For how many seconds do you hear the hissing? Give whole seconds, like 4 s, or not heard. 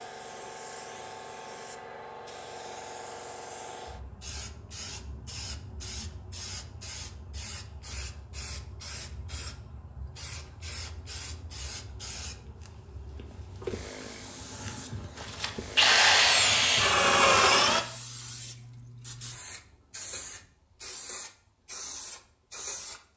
23 s.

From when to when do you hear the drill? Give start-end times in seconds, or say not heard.
15.2-17.9.